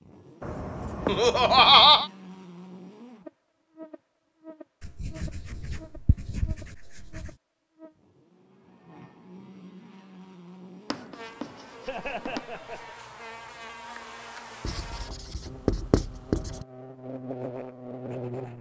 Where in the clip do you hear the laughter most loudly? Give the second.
2 s.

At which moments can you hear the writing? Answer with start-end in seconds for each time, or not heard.
0.4-2.0, 4.8-7.3, 10.9-12.4, 14.6-16.6.